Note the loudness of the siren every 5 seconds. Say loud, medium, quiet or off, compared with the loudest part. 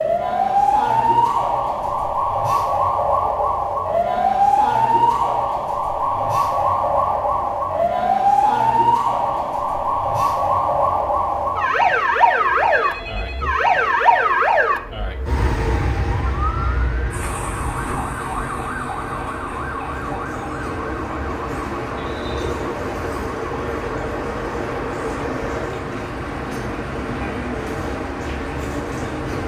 loud, loud, loud, medium, quiet, quiet.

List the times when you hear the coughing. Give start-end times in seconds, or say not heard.
not heard.